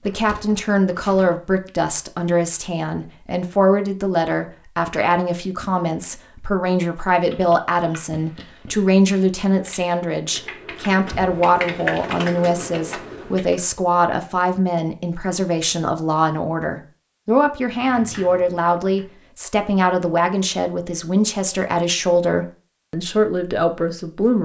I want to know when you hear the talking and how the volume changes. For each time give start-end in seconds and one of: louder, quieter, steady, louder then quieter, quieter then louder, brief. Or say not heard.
0.0-24.4 steady.